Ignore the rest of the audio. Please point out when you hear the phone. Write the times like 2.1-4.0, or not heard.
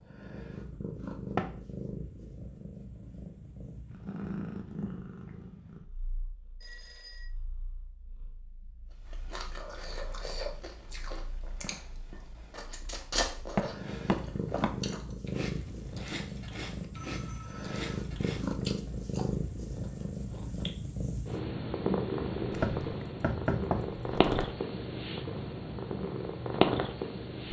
6.6-7.2, 16.9-17.8.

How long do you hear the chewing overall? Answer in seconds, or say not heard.
12 s.